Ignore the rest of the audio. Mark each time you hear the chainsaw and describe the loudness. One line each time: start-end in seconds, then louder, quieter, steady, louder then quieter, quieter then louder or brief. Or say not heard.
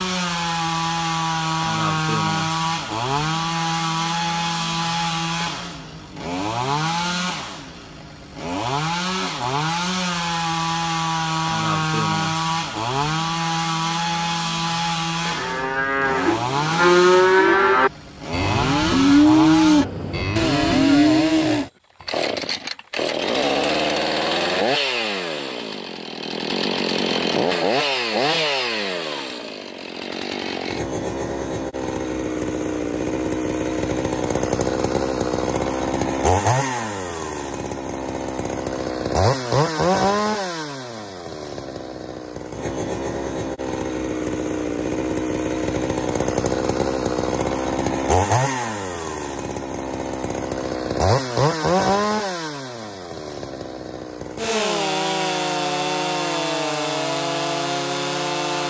0.0-58.6 steady.